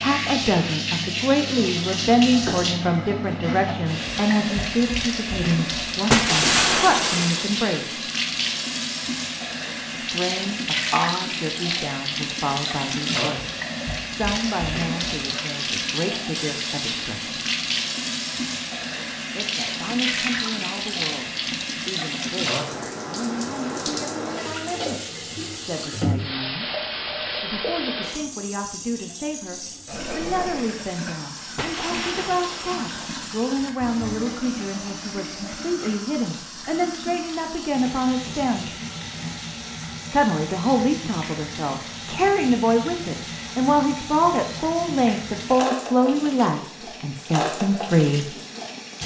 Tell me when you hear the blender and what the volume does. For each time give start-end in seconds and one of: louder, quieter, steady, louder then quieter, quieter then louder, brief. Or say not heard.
not heard.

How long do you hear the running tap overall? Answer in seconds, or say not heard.
49 s.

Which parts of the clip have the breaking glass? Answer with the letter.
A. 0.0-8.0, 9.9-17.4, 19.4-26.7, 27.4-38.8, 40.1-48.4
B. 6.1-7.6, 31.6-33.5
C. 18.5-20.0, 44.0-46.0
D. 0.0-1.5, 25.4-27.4
B.